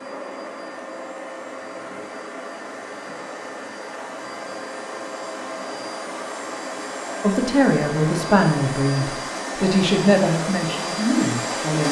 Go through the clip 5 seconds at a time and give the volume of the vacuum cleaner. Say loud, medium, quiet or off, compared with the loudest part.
medium, loud, loud.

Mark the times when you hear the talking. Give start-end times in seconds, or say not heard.
7.2-11.8.